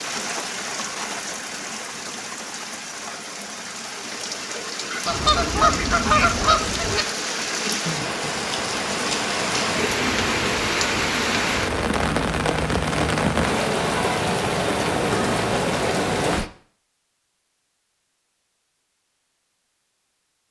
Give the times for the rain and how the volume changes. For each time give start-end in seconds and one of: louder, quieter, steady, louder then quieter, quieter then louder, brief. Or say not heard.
0.0-16.5 louder.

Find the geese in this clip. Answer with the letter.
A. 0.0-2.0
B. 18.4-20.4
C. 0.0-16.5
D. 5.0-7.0
D.